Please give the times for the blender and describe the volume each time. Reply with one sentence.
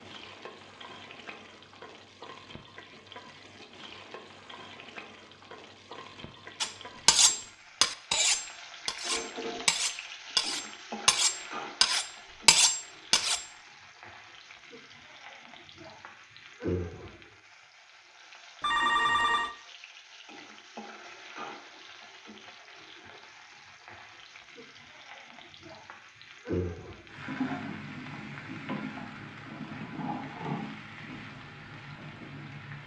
The blender can't be heard in this clip.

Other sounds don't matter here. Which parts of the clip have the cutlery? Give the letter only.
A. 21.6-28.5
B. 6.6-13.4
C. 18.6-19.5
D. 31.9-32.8
B.